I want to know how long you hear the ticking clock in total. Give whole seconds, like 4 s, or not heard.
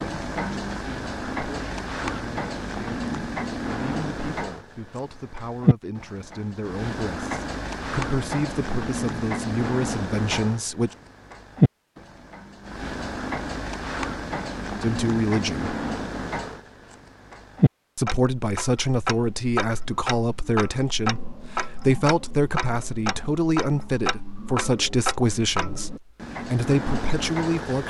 28 s.